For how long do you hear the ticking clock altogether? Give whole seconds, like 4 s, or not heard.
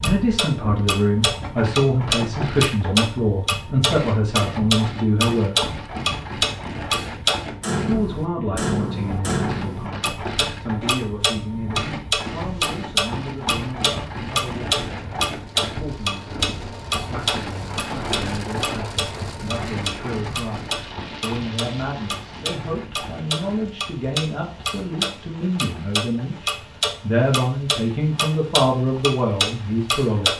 30 s.